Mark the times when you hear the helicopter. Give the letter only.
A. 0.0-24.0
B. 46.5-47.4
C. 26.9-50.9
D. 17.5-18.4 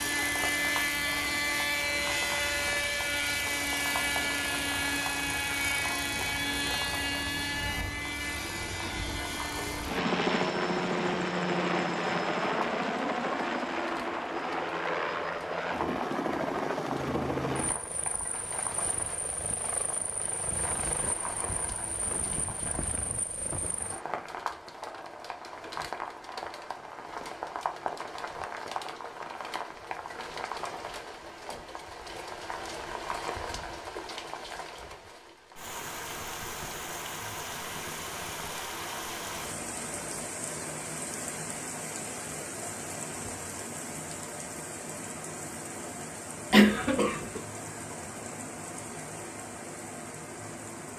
A.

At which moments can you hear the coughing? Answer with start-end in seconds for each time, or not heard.
46.5-47.4.